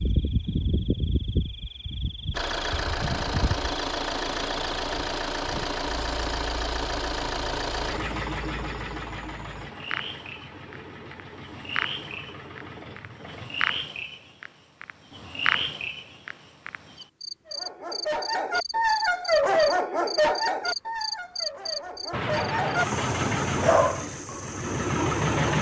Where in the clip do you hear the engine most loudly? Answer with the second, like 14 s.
25 s.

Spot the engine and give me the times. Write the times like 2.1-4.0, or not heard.
2.3-13.7, 22.1-25.5.